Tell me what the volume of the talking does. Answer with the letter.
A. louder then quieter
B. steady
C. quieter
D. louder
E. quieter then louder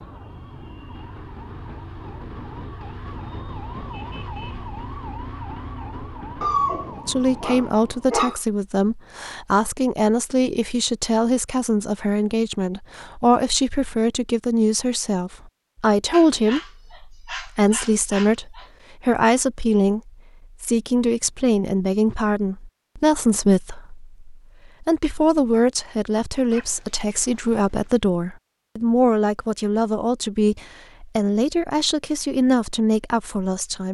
B.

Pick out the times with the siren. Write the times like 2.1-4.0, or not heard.
0.0-8.2.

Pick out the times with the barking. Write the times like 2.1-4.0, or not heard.
6.4-8.4, 16.1-18.7, 26.5-28.0.